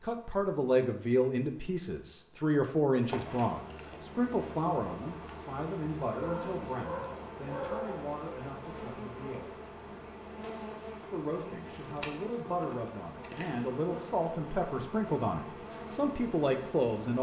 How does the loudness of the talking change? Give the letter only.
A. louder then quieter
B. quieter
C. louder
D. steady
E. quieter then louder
E.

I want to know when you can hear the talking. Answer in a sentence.
The talking can be heard from 0.0 to 9.5 s and from 11.1 to 17.1 s.